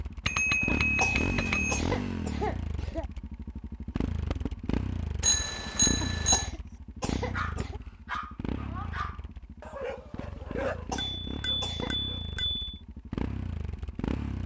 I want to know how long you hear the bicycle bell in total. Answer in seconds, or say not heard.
5 s.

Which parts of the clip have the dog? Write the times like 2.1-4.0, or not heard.
7.3-12.3.